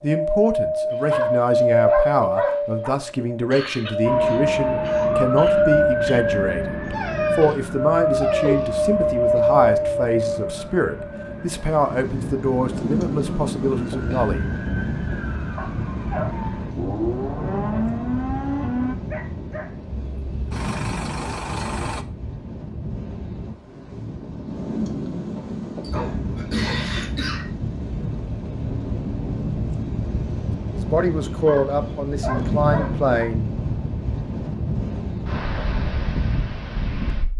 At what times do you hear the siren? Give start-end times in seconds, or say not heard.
4.0-18.9.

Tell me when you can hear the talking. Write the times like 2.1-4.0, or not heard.
0.0-14.5, 30.8-33.5.